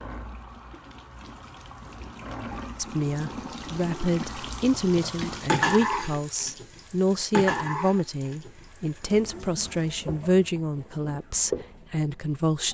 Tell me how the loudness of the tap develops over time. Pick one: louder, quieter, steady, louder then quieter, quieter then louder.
louder then quieter.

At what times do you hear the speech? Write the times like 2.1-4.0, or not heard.
2.8-12.7.